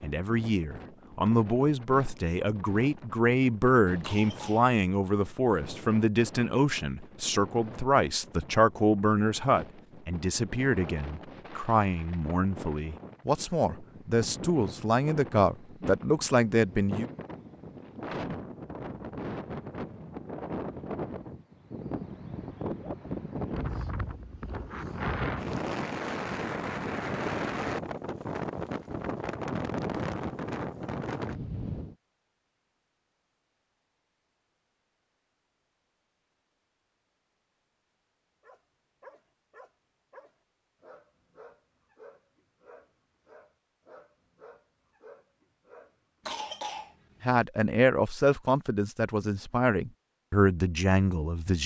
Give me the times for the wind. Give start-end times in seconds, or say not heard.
0.0-31.9.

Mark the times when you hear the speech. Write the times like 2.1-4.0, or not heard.
0.0-17.1, 47.2-51.6.